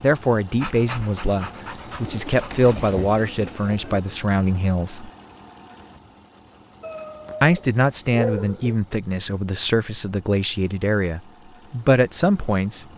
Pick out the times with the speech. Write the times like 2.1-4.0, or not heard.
0.0-5.1, 7.4-12.9.